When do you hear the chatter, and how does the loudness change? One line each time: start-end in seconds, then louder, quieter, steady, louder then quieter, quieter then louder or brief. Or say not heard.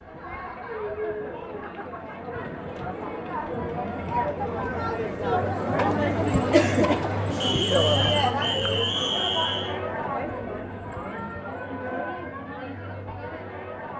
0.0-13.9 louder then quieter.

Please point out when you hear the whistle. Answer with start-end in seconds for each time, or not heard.
7.4-9.8.